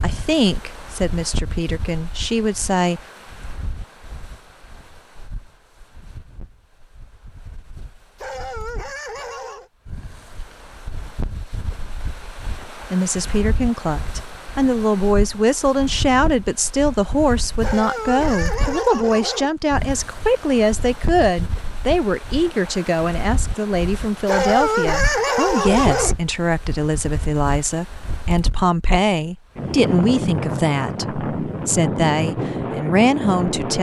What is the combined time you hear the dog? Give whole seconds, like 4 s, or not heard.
5 s.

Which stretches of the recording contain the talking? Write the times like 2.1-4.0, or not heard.
0.0-3.0, 12.9-33.7.